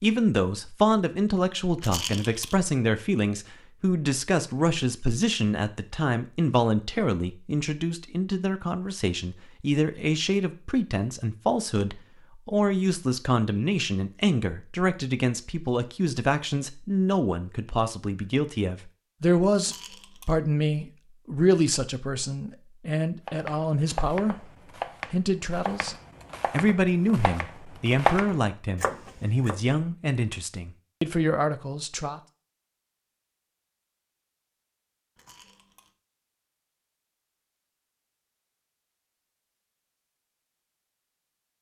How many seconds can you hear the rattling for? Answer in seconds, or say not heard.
2 s.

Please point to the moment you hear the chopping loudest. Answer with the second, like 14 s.
28 s.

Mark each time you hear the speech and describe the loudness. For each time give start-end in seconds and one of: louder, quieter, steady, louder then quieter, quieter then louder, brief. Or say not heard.
0.0-24.5 steady
25.1-32.2 steady.